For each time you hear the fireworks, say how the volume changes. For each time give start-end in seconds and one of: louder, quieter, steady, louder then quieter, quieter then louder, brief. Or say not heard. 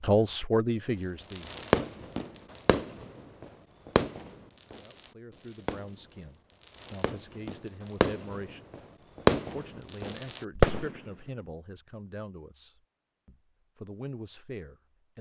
1.3-11.0 quieter then louder.